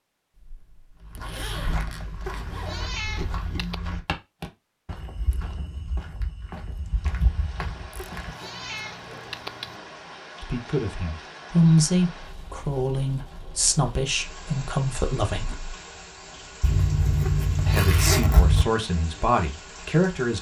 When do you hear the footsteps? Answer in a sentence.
The footsteps can be heard from 1.0 to 8.3 s.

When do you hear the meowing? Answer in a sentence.
You can hear the meowing from 2.2 to 3.8 s, from 8.0 to 9.8 s and from 17.2 to 18.1 s.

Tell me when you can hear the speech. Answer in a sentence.
You can hear the speech from 10.4 to 15.8 s and from 17.6 to 20.3 s.